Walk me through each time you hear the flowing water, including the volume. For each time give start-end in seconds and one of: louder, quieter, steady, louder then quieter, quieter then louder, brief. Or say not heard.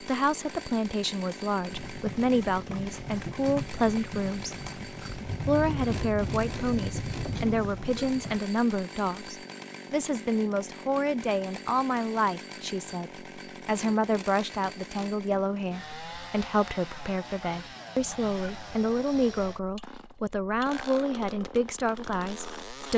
not heard.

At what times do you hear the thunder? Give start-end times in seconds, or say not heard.
5.0-7.9.